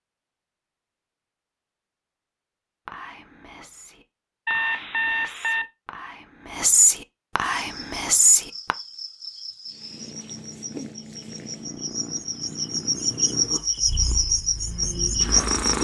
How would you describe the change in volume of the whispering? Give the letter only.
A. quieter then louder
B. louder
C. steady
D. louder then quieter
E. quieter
B.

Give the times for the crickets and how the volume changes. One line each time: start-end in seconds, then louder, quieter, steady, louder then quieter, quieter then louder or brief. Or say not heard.
7.5-15.7 louder.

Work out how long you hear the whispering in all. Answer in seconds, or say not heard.
6 s.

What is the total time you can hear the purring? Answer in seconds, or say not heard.
6 s.